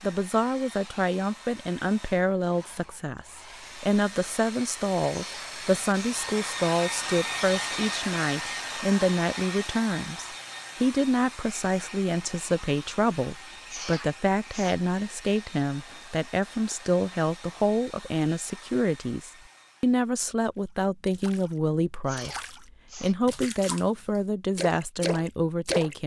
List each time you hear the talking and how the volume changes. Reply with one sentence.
You can hear the talking from 0.0 to 26.0 s, at a steady volume.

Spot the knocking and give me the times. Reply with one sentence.
You can't hear the knocking here.